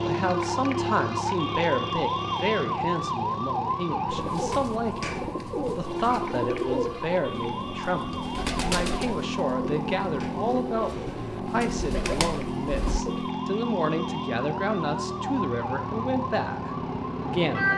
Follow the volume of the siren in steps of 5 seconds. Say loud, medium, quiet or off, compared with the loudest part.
loud, medium, medium, loud.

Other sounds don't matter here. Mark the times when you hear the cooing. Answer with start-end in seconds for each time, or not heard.
4.0-13.3.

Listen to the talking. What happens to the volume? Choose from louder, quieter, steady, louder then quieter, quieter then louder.
steady.